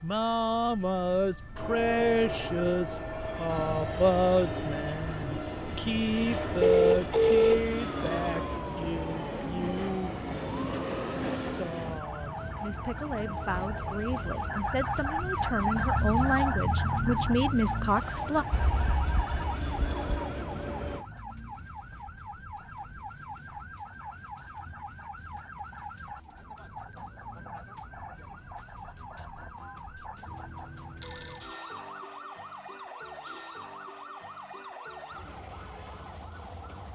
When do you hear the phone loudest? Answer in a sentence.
The volume of the phone peaks at 7 seconds.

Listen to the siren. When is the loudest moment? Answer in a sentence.
The loudest moment of the siren is at 16 seconds.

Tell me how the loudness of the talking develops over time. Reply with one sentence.
The volume of the talking goes down, then up.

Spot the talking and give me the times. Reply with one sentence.
The talking can be heard from 0.0 to 18.4 s.